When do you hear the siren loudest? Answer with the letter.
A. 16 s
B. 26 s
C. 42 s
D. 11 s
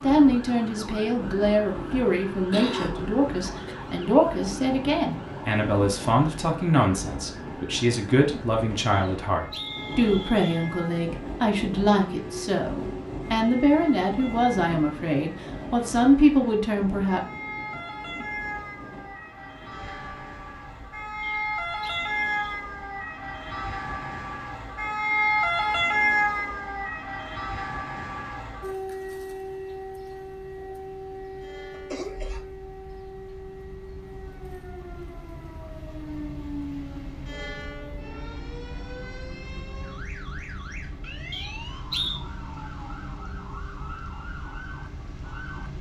B.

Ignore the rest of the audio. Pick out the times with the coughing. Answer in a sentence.
The coughing can be heard from 2.3 to 3.8 s and from 31.7 to 32.5 s.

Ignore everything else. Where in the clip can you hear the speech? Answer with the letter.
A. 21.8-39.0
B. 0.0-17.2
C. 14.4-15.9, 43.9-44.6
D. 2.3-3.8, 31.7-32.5
B.